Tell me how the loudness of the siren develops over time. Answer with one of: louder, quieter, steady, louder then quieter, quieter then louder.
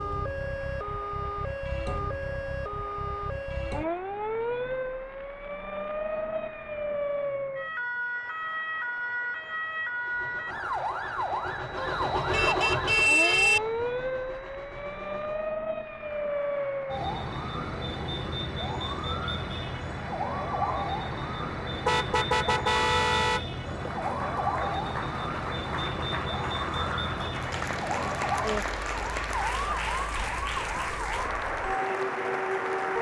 steady.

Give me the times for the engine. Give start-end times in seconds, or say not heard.
9.9-15.5.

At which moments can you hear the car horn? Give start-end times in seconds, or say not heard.
11.8-13.6, 21.9-23.4.